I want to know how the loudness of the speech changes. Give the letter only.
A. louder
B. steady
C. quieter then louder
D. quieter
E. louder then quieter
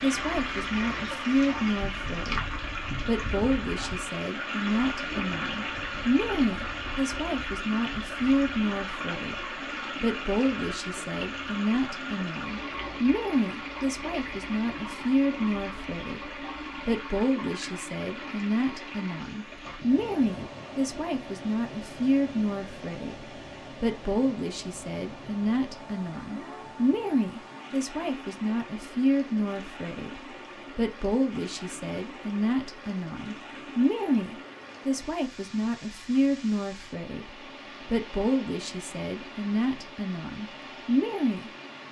B.